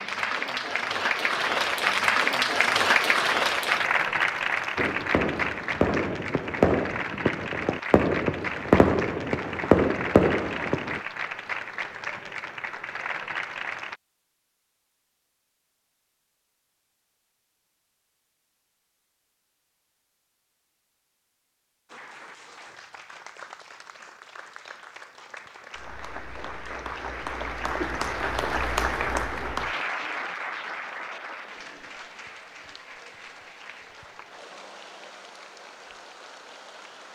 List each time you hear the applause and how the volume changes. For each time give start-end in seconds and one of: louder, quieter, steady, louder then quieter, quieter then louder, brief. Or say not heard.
0.0-14.0 quieter
21.9-37.0 louder then quieter.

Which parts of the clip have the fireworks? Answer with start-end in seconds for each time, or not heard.
4.8-11.0.